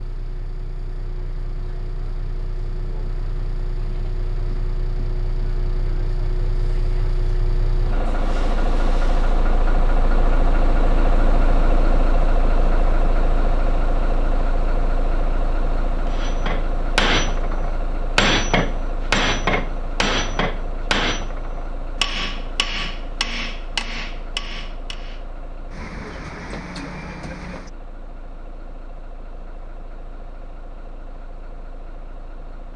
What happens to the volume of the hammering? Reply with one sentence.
The loudness of the hammering goes down.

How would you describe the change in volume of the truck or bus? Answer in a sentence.
The loudness of the truck or bus goes up, then down.